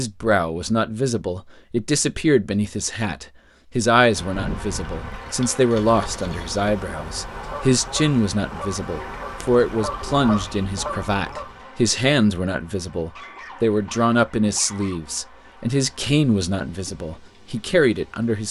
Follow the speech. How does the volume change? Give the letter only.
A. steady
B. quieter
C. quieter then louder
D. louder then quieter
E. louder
A.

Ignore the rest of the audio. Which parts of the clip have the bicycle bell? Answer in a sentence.
The bicycle bell can't be heard in this clip.